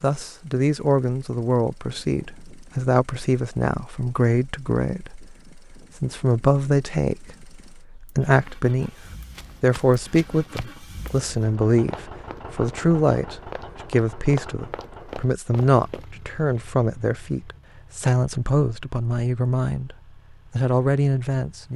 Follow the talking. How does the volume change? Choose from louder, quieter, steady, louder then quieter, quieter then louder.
steady.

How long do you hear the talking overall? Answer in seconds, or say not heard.
21 s.